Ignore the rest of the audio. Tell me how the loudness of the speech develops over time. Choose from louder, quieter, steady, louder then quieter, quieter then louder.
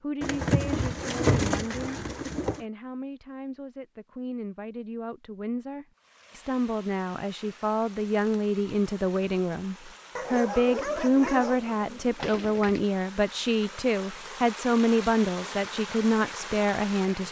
louder.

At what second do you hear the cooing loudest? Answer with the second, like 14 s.
1 s.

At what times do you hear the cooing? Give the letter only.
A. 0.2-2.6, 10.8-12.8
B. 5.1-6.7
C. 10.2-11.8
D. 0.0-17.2
A.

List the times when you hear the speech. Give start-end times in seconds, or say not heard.
0.0-17.2.